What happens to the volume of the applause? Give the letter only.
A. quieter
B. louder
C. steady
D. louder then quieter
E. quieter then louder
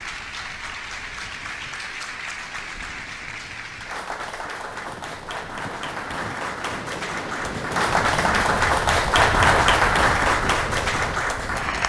B.